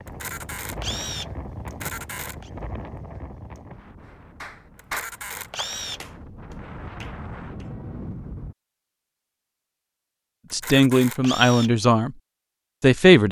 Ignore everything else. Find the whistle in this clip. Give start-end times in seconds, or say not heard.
not heard.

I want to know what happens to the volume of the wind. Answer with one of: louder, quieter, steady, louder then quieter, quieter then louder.
quieter then louder.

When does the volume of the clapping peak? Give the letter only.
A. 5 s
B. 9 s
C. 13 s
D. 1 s
A.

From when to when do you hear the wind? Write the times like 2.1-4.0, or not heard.
0.0-8.6.